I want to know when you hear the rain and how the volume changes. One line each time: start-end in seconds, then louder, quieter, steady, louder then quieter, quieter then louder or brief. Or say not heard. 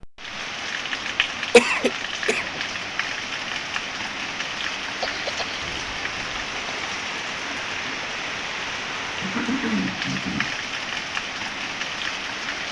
0.0-12.6 steady.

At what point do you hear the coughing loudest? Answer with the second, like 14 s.
2 s.